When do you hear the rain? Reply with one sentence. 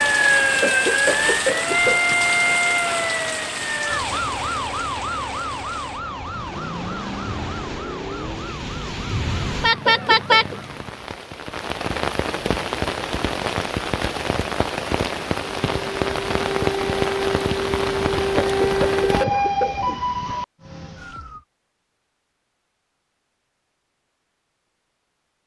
The rain can be heard from 0.0 to 19.2 s.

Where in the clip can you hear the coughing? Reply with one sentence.
You can hear the coughing from 0.6 to 2.1 s, from 9.8 to 10.6 s and from 18.4 to 20.1 s.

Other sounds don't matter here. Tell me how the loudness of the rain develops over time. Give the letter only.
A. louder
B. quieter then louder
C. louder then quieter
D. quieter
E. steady
B.